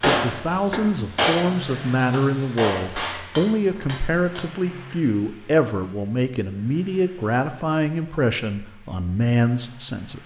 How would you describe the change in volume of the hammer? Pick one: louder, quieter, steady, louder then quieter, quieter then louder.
quieter.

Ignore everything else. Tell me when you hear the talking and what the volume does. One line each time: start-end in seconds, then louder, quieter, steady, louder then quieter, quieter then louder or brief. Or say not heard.
0.1-10.2 steady.